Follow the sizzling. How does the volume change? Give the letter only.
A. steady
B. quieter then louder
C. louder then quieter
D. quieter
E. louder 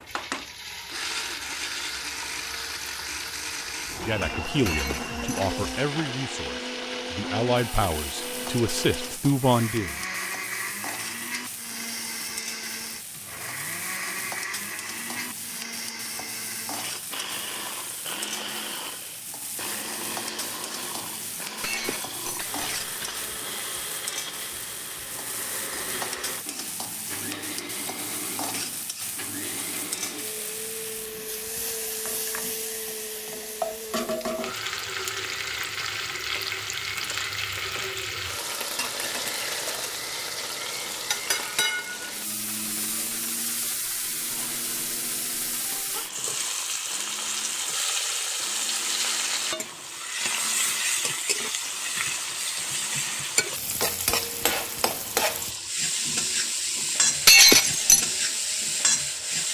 E.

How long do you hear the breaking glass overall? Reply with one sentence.
You can hear the breaking glass for 3 seconds altogether.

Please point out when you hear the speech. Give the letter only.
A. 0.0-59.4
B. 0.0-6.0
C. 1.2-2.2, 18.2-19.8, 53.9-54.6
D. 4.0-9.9
D.